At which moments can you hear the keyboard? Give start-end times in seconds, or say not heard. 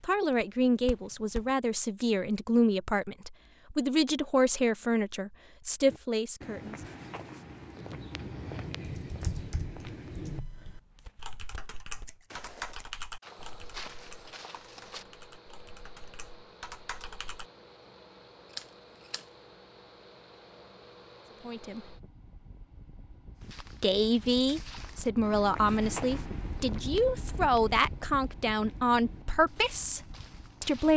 8.8-17.4.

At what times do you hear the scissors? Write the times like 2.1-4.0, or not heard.
12.1-12.8, 18.5-19.2.